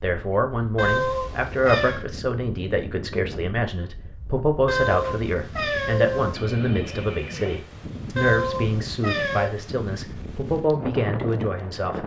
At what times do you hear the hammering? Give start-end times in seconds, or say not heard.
not heard.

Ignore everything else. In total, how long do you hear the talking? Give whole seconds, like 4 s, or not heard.
12 s.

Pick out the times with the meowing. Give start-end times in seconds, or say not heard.
0.8-2.0, 4.7-6.4, 8.2-9.5.